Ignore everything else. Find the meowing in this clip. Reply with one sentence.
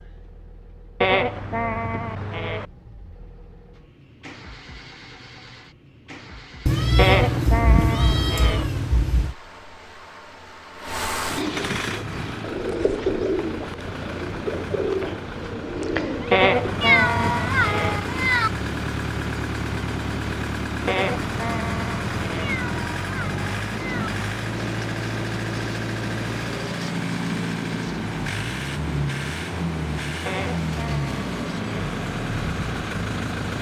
You can hear the meowing from 6.7 to 9.3 s, from 16.8 to 18.5 s and from 22.4 to 24.1 s.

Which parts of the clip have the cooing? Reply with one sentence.
The cooing can be heard from 11.8 to 16.9 s.